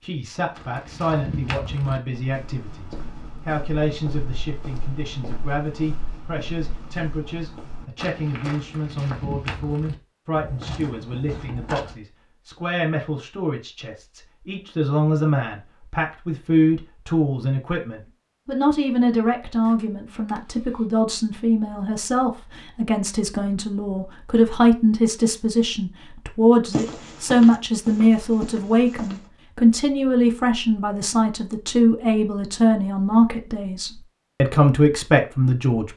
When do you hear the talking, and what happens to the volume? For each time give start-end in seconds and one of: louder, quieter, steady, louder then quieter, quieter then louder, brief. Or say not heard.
0.0-35.9 louder.